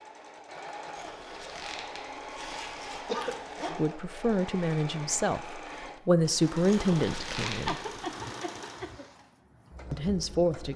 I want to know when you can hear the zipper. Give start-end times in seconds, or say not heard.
0.9-3.7, 6.7-7.9.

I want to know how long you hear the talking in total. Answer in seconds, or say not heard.
5 s.